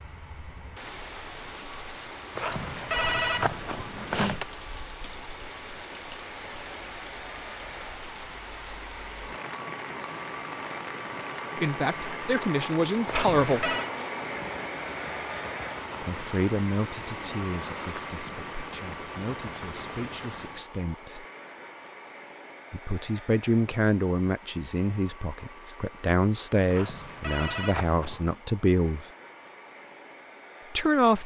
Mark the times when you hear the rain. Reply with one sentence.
You can hear the rain from 0.0 to 20.7 s.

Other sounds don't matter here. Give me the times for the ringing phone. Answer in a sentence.
The ringing phone can be heard from 2.4 to 4.5 s, from 13.1 to 13.9 s and from 26.6 to 28.4 s.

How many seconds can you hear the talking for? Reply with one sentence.
You can hear the talking for 14 seconds altogether.